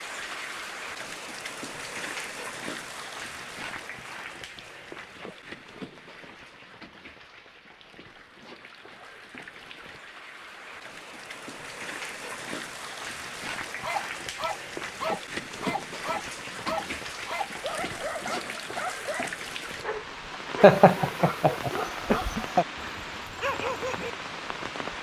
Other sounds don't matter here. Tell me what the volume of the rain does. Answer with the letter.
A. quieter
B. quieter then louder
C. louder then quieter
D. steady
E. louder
B.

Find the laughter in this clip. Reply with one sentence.
The laughter can be heard from 20.6 to 22.6 s.